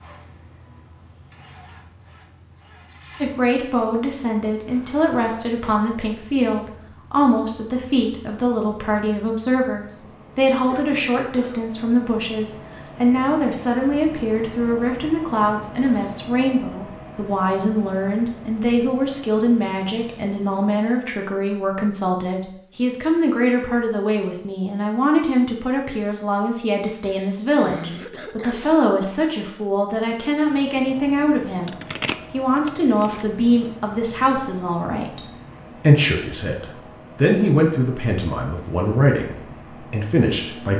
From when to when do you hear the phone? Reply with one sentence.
You can hear the phone from 31.2 to 33.2 s.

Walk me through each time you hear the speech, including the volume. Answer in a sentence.
You can hear the speech from 3.2 to 40.7 s, at a steady volume.